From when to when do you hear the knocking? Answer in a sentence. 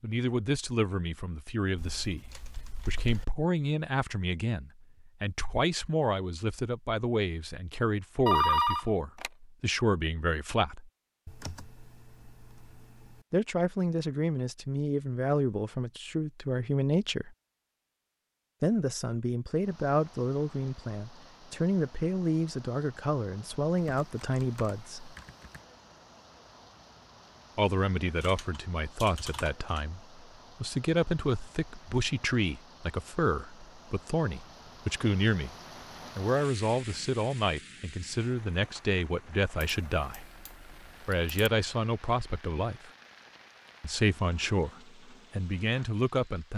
The knocking can't be heard in this clip.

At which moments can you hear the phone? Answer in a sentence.
You can hear the phone from 8.2 to 9.3 s.